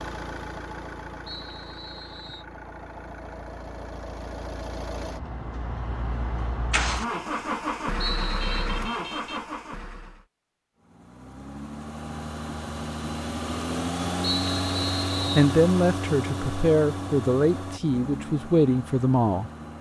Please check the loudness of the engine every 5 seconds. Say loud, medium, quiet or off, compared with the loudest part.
medium, loud, loud, loud.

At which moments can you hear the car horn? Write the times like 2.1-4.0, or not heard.
8.4-9.5.